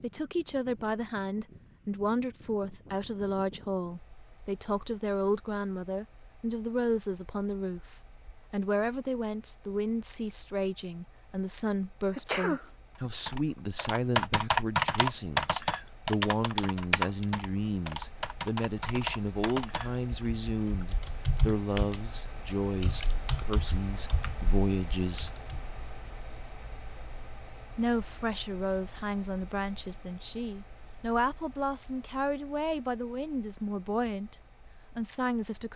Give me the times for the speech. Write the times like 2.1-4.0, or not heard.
0.0-25.4, 27.8-34.4, 35.0-35.7.